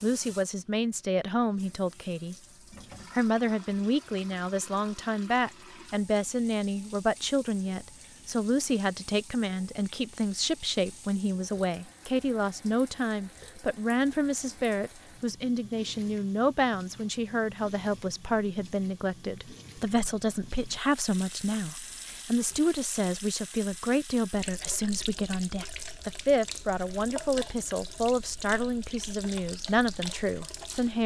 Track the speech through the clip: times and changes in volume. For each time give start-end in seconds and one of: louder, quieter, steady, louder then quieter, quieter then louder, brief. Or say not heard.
0.0-2.4 brief
3.1-31.0 steady.